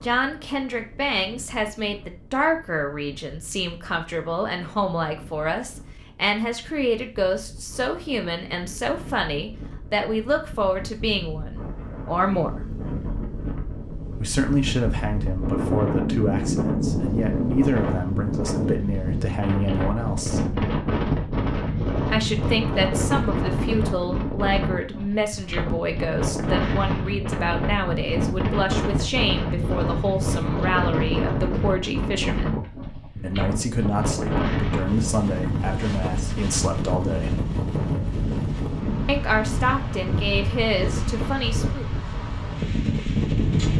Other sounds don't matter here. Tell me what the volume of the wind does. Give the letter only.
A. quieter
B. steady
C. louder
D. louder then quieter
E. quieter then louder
C.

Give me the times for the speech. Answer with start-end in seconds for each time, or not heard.
0.0-12.7, 14.2-20.6, 22.1-37.5, 39.0-41.9.